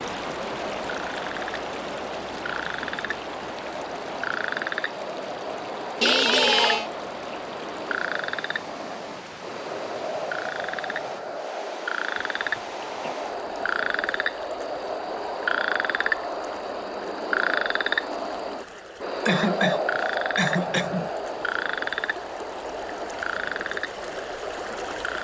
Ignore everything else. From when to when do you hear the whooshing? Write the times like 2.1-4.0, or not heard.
20.5-21.1.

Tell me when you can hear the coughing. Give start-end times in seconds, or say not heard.
6.0-6.8, 12.2-13.2, 19.2-20.9.